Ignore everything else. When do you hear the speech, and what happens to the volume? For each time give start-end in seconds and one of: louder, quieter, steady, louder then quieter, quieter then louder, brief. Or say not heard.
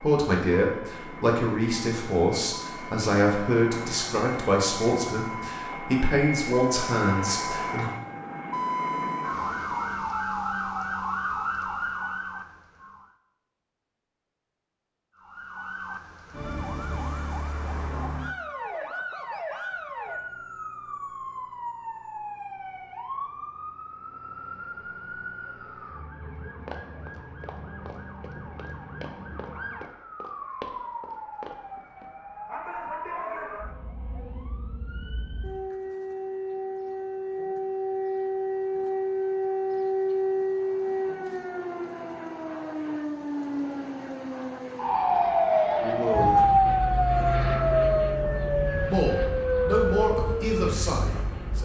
0.0-7.9 steady
45.8-46.5 brief
48.9-51.6 brief.